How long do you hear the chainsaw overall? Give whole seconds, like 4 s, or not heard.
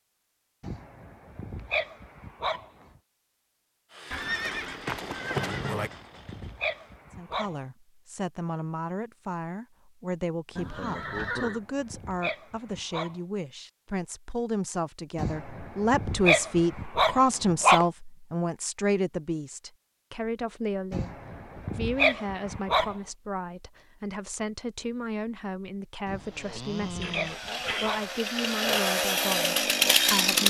7 s.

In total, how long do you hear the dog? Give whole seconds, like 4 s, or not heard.
13 s.